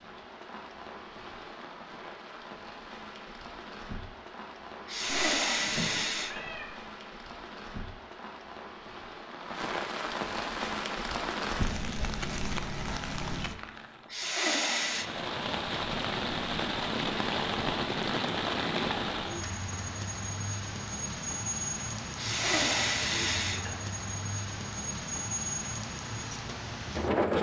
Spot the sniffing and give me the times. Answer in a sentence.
You can hear the sniffing from 4.8 to 6.5 s, from 14.1 to 15.1 s and from 22.1 to 23.8 s.